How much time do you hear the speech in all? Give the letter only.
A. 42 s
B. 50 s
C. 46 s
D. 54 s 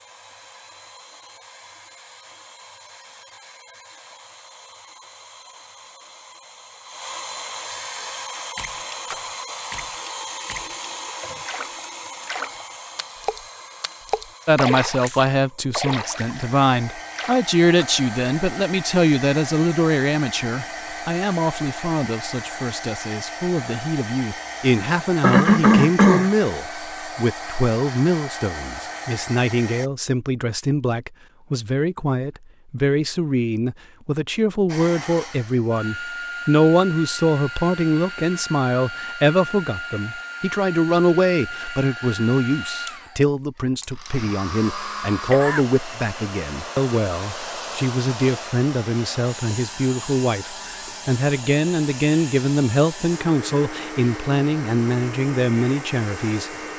A.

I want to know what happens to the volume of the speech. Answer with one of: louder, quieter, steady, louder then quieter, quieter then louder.
steady.